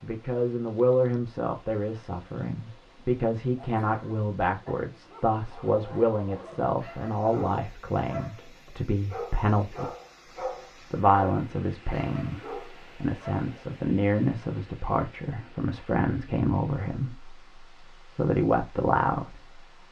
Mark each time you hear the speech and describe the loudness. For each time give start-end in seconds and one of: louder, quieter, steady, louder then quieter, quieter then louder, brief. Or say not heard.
0.0-19.8 steady.